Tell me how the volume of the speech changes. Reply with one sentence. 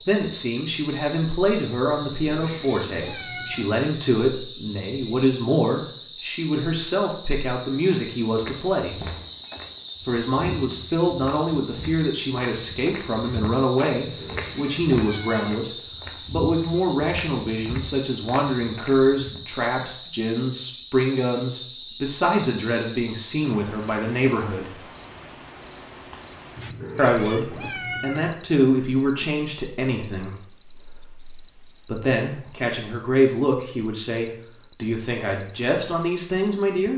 The volume of the speech stays about the same.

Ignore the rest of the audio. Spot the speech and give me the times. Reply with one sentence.
The speech can be heard from 0.0 to 9.1 s, from 10.0 to 24.8 s and from 26.9 to 36.9 s.